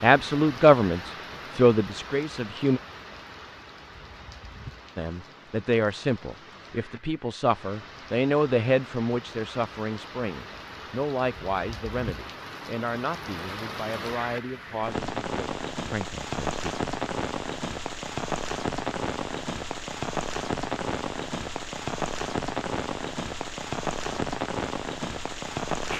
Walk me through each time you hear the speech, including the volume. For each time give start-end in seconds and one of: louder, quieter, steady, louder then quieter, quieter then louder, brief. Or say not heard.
0.0-2.8 brief
5.0-16.6 quieter.